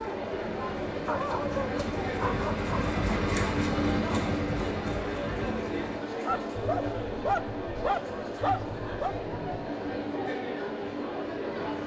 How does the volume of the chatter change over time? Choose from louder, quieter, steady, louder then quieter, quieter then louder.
steady.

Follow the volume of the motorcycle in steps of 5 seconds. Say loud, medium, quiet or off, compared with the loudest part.
loud, medium, medium.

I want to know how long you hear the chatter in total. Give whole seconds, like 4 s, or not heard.
12 s.